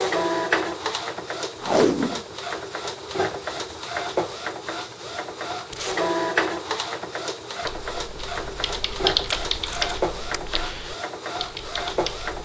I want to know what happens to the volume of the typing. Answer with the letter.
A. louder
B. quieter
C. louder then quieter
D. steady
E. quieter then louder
C.